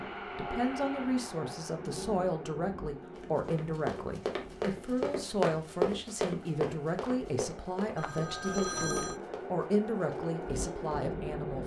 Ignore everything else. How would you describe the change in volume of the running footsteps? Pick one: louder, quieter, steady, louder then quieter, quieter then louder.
louder then quieter.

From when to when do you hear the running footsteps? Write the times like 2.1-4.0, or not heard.
3.1-11.1.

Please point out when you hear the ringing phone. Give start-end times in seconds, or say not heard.
8.0-9.2.